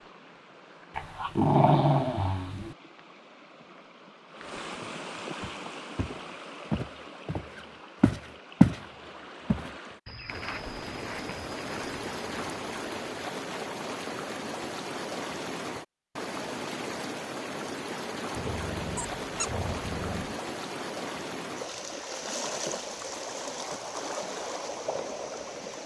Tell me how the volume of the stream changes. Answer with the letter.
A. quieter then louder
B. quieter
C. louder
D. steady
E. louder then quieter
C.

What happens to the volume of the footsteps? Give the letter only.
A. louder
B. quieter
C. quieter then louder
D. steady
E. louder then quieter
E.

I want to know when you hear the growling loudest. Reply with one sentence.
The volume of the growling peaks at 2 seconds.